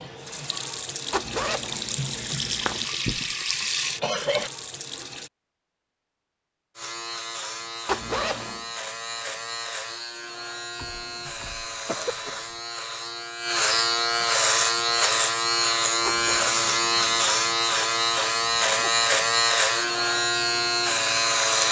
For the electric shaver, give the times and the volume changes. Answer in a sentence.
The electric shaver can be heard from 6.8 to 21.6 s, getting louder.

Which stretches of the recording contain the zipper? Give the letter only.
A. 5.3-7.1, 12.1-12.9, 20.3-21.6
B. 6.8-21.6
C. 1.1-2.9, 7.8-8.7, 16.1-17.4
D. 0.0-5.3
C.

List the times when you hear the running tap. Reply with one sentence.
You can hear the running tap from 0.0 to 5.3 s.